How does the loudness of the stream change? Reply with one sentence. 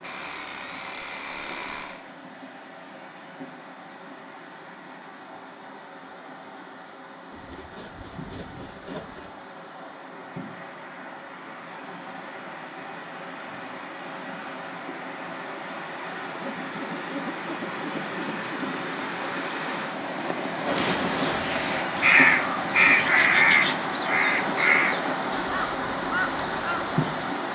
The volume of the stream goes up.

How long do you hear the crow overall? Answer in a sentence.
You can hear the crow for 7 seconds altogether.